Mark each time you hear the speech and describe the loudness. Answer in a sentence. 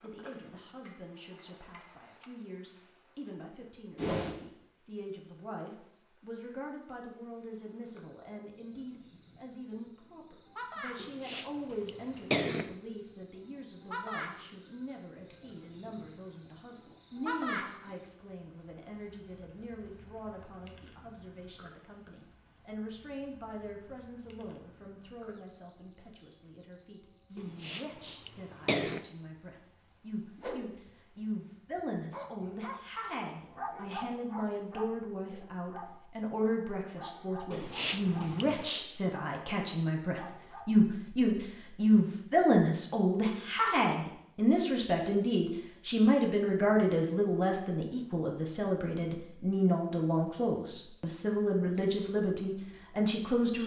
You can hear the speech from 0.0 to 53.6 s, getting louder.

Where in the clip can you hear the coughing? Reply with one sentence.
You can hear the coughing from 11.0 to 12.8 s, from 27.4 to 29.0 s and from 37.5 to 38.6 s.